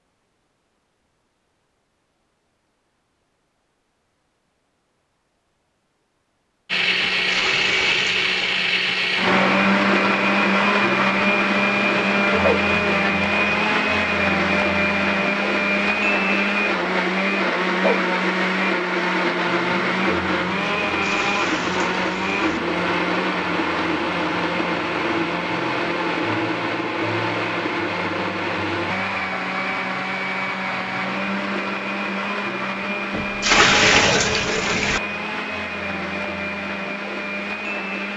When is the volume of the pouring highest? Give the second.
34 s.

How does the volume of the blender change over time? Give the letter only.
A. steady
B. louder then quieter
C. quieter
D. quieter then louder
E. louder
C.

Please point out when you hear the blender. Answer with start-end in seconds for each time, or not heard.
6.7-38.1.